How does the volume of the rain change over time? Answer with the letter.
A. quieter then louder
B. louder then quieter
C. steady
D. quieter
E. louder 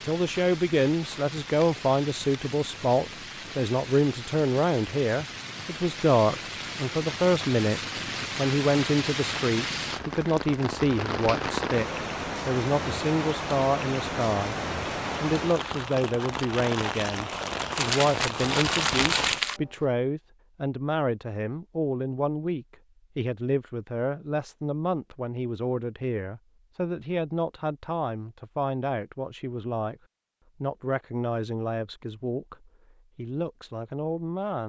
E.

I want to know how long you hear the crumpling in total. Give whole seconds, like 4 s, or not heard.
2 s.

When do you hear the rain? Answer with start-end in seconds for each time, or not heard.
0.0-19.8.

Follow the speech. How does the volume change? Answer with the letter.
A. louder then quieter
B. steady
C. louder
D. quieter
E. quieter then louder
D.